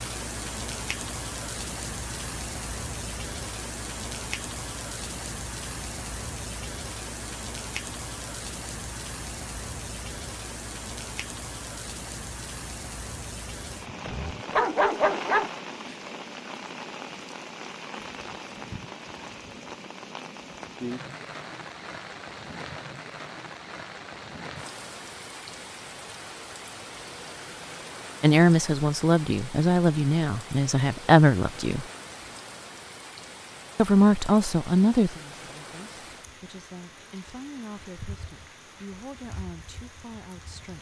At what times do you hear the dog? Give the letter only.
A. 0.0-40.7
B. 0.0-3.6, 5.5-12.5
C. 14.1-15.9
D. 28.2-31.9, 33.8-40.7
C.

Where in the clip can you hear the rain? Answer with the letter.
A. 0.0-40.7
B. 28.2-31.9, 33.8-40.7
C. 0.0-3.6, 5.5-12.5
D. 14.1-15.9
A.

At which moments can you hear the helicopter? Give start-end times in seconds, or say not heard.
not heard.